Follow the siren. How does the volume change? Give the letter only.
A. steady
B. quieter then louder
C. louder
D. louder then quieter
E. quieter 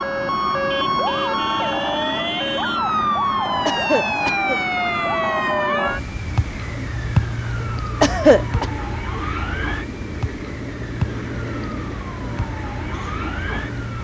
E.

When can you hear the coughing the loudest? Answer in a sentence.
The loudest moment of the coughing is at 8 seconds.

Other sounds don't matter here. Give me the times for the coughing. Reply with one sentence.
You can hear the coughing from 3.6 to 4.6 s and from 8.0 to 8.7 s.